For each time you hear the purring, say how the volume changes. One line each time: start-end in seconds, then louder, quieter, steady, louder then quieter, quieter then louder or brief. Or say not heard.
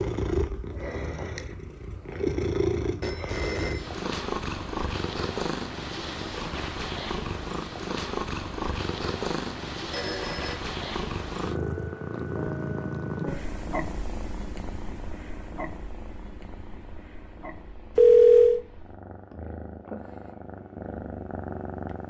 0.0-22.0 quieter.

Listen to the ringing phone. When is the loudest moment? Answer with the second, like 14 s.
18 s.